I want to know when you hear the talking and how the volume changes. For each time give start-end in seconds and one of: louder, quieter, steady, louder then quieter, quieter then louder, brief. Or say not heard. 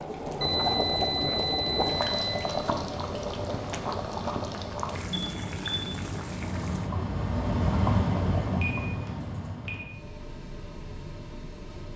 not heard.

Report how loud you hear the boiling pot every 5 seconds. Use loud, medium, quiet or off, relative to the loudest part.
loud, medium, off.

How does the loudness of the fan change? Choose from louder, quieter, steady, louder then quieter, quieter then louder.
louder then quieter.